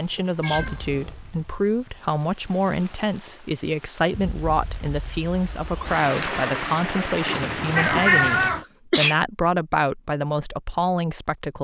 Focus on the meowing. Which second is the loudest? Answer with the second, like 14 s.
8 s.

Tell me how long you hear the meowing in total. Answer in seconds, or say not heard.
2 s.